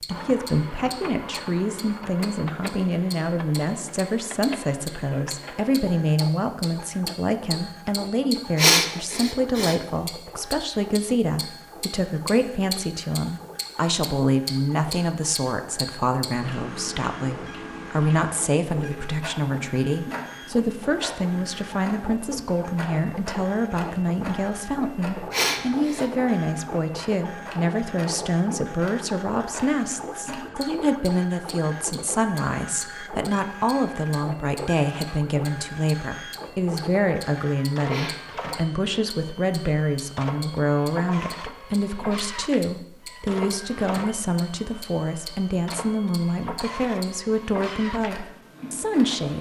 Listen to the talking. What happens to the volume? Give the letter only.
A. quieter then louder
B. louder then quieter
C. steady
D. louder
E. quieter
C.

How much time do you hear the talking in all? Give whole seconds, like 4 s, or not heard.
49 s.